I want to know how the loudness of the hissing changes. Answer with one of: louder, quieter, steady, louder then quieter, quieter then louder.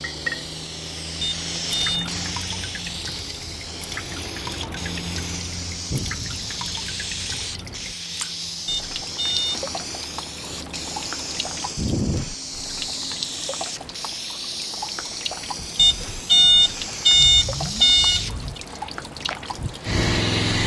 steady.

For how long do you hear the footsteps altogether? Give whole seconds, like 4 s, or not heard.
not heard.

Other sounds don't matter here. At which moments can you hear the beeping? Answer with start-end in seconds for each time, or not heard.
1.2-2.1, 8.7-9.6, 15.8-18.6.